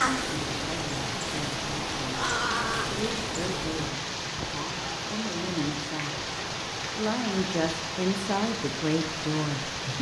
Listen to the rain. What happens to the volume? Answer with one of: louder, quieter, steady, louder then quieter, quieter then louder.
steady.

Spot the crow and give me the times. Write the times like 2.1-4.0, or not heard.
0.0-4.0.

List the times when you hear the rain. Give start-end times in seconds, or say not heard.
0.0-9.9.